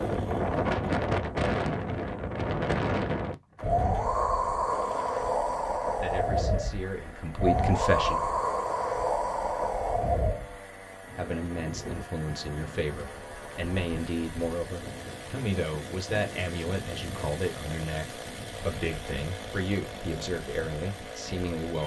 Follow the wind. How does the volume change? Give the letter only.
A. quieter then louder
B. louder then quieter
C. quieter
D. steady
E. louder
C.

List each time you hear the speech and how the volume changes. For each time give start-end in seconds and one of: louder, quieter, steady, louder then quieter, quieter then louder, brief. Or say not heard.
6.0-8.2 brief
11.2-21.8 steady.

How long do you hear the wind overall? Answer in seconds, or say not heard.
22 s.